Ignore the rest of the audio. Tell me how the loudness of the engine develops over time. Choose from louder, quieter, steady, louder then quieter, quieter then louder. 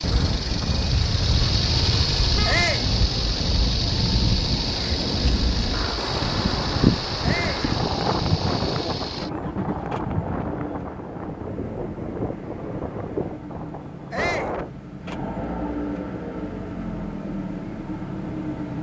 quieter then louder.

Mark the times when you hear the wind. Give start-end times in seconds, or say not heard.
0.0-14.7.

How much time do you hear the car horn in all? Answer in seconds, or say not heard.
2 s.